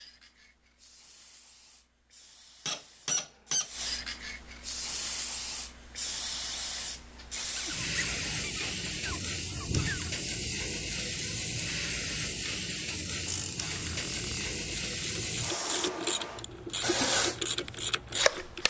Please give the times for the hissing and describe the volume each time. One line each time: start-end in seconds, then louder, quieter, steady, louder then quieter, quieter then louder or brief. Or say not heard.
0.0-18.6 louder.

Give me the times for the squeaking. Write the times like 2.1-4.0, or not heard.
2.6-3.7, 7.5-10.1, 13.7-14.6.